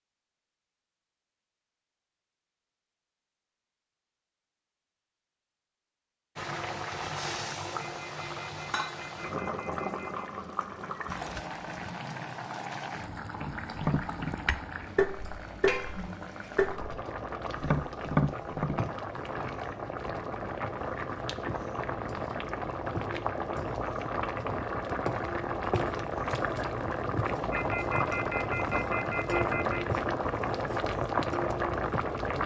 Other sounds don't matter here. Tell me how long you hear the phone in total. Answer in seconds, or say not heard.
5 s.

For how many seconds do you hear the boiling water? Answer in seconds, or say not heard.
26 s.